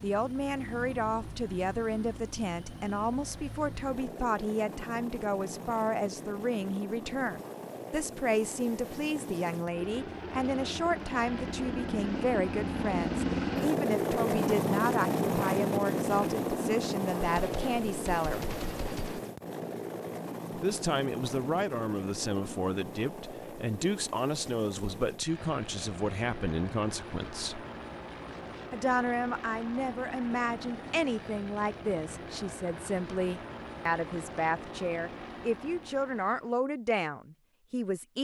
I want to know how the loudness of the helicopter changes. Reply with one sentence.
The volume of the helicopter goes up, then down.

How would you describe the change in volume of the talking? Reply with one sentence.
The volume of the talking stays about the same.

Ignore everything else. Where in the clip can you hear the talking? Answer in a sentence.
The talking can be heard from 0.0 to 18.6 s, from 20.6 to 27.6 s and from 28.7 to 38.1 s.